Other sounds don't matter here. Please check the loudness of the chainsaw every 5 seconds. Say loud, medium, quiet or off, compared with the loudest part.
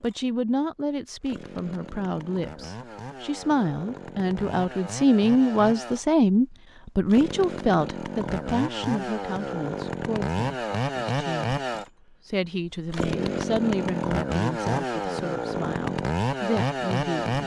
quiet, medium, loud, loud.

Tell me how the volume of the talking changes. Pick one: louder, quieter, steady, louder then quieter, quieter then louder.
louder then quieter.